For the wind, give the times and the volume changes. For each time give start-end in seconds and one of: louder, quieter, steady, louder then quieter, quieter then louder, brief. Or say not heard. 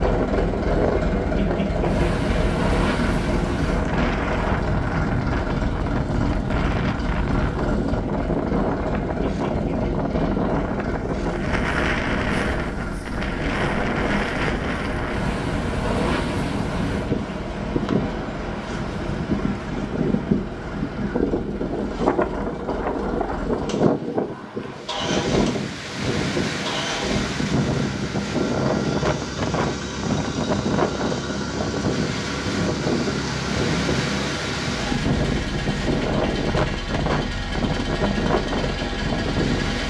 0.0-39.8 steady.